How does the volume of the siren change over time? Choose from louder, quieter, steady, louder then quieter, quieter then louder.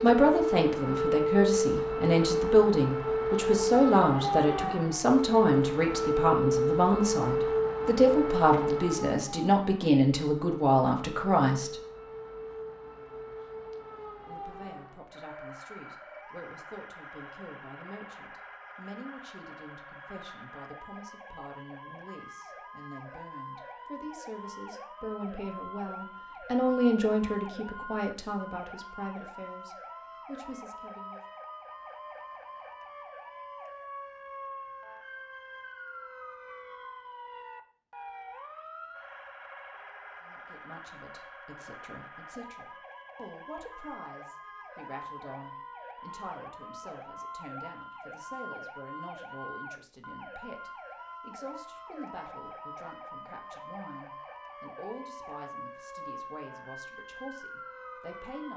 quieter.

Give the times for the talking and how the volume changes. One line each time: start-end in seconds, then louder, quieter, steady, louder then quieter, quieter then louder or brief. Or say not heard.
0.0-11.8 steady
14.2-31.2 louder then quieter
40.2-58.5 steady.